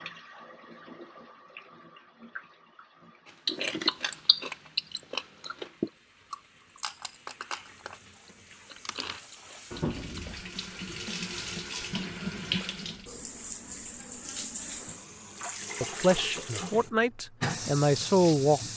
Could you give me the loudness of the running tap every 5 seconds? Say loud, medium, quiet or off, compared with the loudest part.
quiet, medium, loud, loud.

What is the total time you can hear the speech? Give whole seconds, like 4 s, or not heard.
3 s.